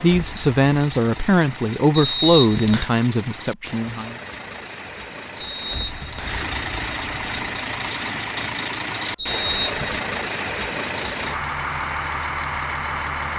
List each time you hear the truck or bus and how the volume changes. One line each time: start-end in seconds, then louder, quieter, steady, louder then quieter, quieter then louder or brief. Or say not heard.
0.0-13.3 louder.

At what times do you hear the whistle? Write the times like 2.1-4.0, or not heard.
1.9-2.9, 5.3-6.5, 9.2-10.0.